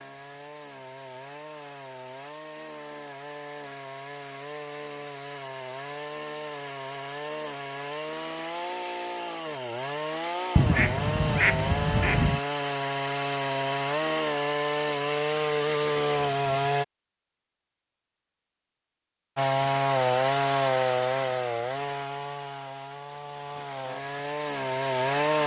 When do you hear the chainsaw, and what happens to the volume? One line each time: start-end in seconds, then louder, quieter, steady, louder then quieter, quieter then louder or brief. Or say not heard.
0.0-16.9 louder
19.4-25.4 quieter then louder.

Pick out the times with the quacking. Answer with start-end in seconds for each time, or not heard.
10.6-12.4.